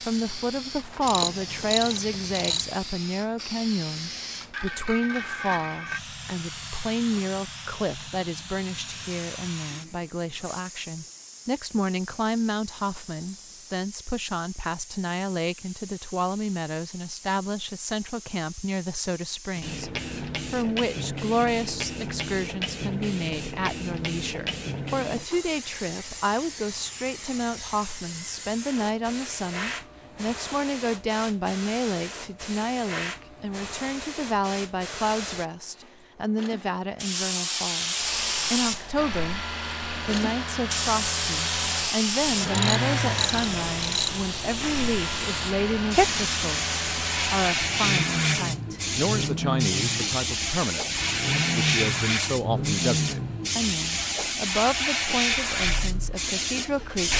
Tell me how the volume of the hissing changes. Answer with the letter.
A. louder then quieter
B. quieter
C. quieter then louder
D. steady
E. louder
E.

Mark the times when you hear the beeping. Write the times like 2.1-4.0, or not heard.
not heard.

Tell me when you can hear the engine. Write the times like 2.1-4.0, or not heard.
38.0-57.1.